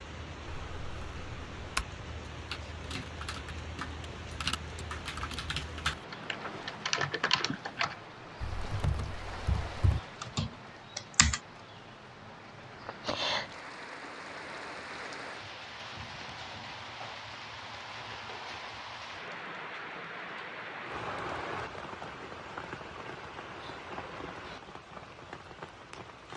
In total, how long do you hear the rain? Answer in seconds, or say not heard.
26 s.